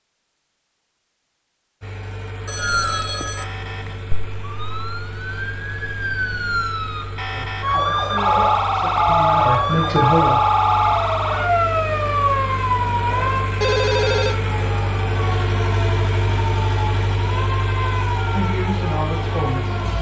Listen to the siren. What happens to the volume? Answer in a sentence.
The volume of the siren goes up, then down.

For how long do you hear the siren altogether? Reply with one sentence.
The siren can be heard for 17 seconds in total.